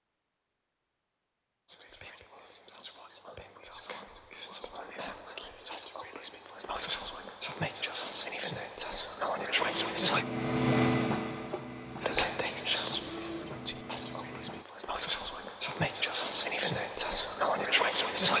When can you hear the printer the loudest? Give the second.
11 s.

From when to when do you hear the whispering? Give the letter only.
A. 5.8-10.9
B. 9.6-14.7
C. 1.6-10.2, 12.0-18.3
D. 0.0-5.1
C.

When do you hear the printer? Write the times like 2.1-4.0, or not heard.
9.6-14.7.